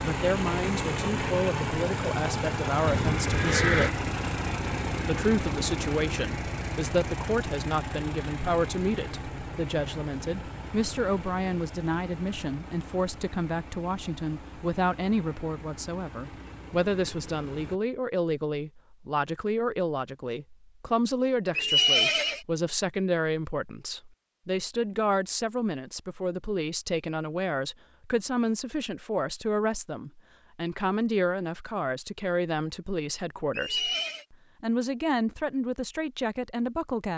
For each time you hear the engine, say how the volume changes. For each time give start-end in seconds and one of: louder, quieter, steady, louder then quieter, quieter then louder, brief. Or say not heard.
0.0-17.8 quieter.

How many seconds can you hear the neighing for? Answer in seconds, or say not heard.
3 s.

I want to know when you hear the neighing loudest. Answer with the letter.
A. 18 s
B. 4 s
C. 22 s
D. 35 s
C.